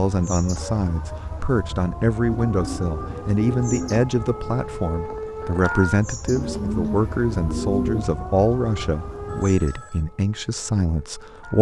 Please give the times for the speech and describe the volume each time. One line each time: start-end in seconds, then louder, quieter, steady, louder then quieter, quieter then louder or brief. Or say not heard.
0.0-11.5 steady.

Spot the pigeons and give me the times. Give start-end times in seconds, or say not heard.
2.5-4.0, 6.2-8.1.